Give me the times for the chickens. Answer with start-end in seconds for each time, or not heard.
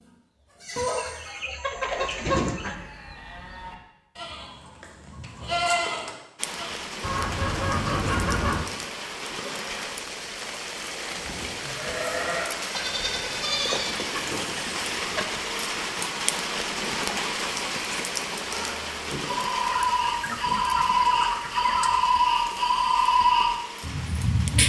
0.8-2.8, 7.0-8.7, 13.7-15.2, 19.7-22.1.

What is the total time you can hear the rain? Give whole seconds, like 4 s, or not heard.
18 s.